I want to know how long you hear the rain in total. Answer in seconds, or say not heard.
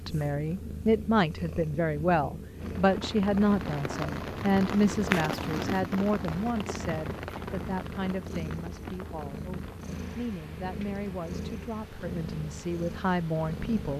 11 s.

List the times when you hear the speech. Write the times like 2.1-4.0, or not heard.
0.1-13.9.